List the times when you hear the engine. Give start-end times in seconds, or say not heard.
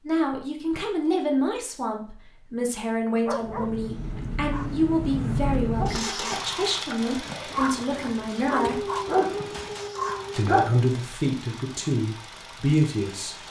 3.4-13.4.